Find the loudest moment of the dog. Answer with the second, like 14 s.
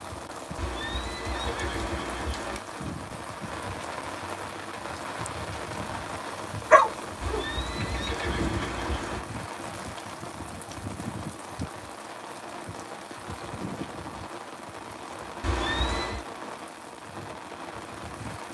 7 s.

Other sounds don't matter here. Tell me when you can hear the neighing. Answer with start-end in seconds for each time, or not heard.
0.6-2.6, 7.2-9.2, 15.4-16.2.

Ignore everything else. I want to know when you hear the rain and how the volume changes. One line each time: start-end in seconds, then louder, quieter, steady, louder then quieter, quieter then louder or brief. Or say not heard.
0.0-18.4 steady.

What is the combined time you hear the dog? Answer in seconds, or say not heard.
2 s.